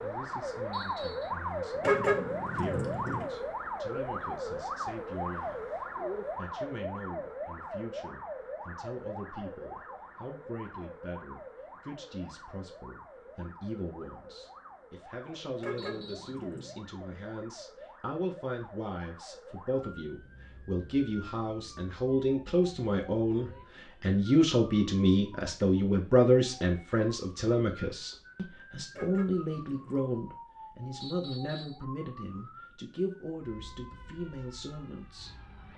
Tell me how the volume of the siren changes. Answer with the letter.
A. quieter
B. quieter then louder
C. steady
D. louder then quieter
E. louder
A.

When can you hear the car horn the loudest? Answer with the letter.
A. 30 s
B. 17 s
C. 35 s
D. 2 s
D.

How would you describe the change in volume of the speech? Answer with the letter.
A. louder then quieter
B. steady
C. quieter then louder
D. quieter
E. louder
A.